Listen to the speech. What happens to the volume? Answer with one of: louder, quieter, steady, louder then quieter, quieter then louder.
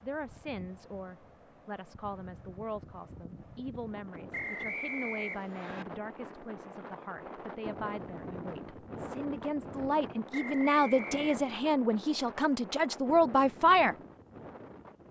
louder.